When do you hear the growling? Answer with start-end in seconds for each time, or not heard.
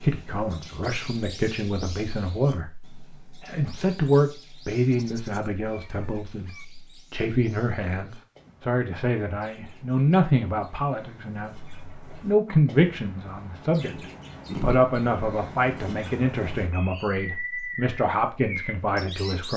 13.8-14.8.